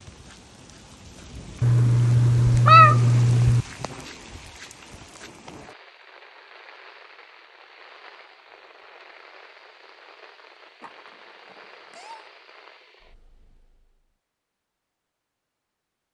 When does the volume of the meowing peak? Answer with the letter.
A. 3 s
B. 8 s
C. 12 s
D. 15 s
A.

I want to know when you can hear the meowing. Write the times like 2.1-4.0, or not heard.
1.6-3.6, 10.8-12.2.